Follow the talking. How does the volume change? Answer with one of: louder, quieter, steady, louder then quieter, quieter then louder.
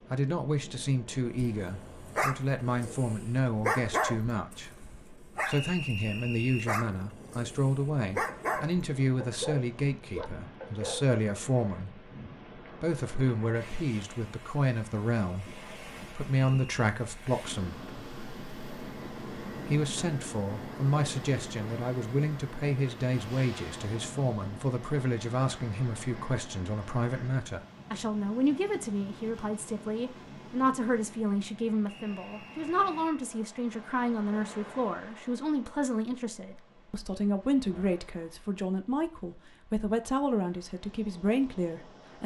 steady.